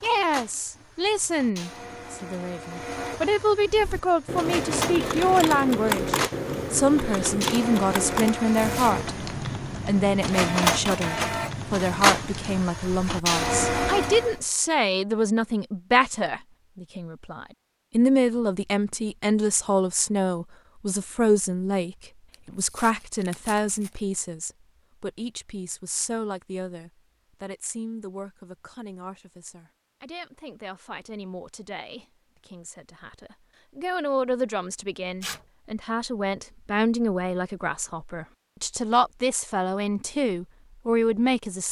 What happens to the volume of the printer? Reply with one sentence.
The volume of the printer goes up.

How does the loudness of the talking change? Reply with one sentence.
The loudness of the talking goes down, then up.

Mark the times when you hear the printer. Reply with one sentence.
You can hear the printer from 0.0 to 14.4 s.